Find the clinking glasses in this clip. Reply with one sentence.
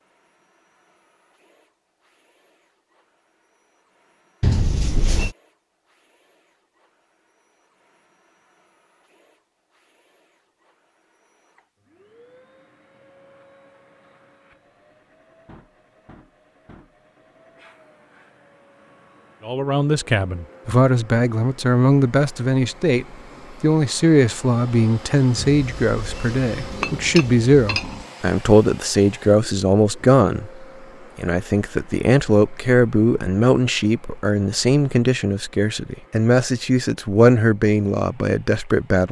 You can hear the clinking glasses from 4.4 to 5.3 s and from 25.4 to 28.1 s.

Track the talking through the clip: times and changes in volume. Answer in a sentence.
The talking can be heard from 19.4 to 39.0 s, at a steady volume.